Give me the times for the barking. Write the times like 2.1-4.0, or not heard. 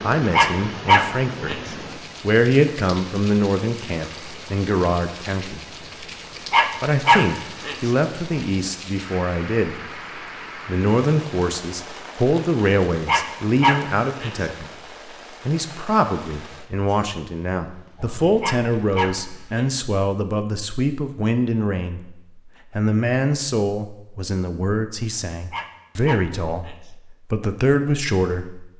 0.3-1.6, 6.5-7.9, 13.1-14.4, 18.4-19.8, 25.5-26.9.